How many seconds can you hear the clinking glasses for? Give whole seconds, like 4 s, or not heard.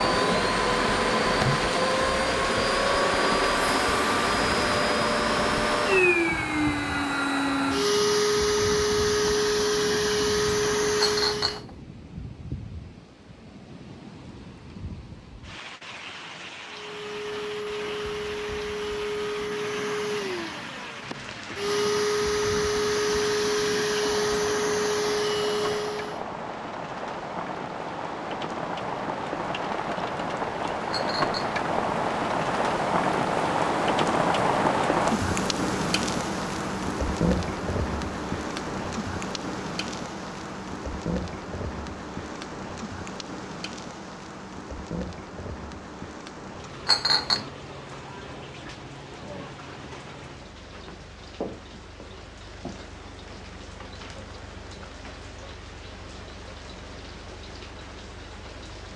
2 s.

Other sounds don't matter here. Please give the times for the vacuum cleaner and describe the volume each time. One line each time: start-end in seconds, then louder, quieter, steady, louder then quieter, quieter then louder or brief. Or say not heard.
0.0-11.6 steady
16.6-26.2 louder.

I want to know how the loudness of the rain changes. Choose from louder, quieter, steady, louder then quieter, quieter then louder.
louder then quieter.